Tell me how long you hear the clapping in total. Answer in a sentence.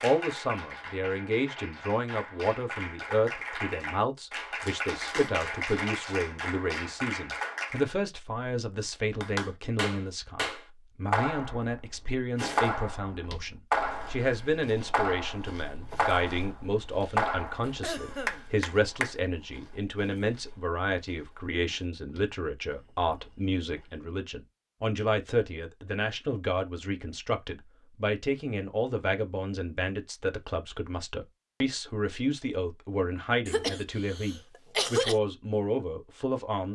The clapping can be heard for 18 seconds in total.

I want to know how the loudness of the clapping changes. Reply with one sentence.
The volume of the clapping goes up.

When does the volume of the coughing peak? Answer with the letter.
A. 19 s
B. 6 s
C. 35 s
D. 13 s
C.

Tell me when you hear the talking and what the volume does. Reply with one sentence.
You can hear the talking from 0.0 to 36.7 s, at a steady volume.